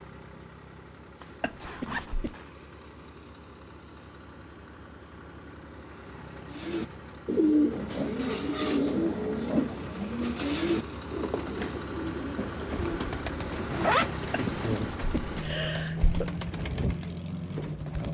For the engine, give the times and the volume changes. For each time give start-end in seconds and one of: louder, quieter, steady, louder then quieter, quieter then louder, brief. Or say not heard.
0.0-18.0 louder.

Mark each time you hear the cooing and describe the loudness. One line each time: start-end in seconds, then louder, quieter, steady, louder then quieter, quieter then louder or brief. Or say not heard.
6.5-18.0 quieter.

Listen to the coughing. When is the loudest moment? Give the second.
16 s.